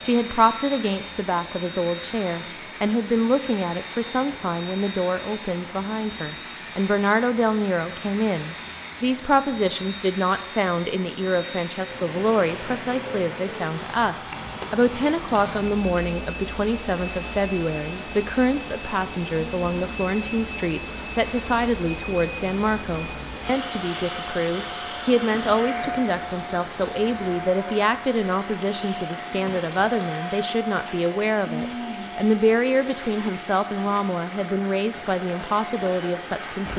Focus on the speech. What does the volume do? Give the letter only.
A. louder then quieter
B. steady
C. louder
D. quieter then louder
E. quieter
B.